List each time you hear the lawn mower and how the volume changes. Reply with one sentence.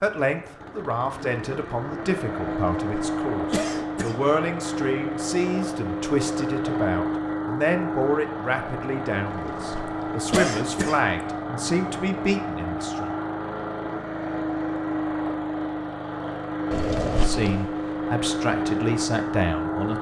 You can hear the lawn mower from 0.0 to 19.9 s, at a steady volume.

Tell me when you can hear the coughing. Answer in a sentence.
The coughing can be heard from 2.7 to 4.2 s, from 9.2 to 11.2 s and from 16.7 to 17.6 s.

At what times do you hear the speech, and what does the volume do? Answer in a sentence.
The speech can be heard from 0.0 to 13.1 s, at a steady volume; and briefly from 17.1 to 19.9 s.